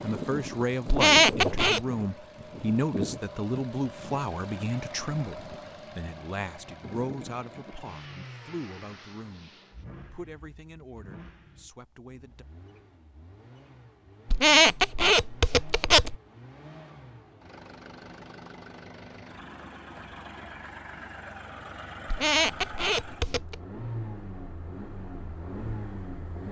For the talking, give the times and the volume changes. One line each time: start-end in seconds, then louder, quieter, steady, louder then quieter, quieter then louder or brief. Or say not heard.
0.0-9.5 quieter
10.1-12.4 brief.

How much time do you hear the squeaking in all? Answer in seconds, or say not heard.
4 s.